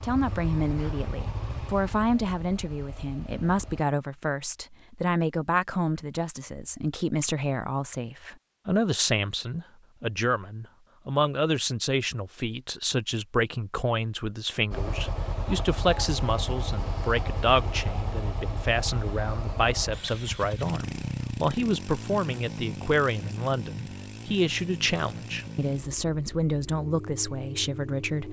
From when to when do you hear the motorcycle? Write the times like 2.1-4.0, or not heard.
0.0-3.9, 14.7-28.2.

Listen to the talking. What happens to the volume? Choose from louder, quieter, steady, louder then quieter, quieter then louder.
steady.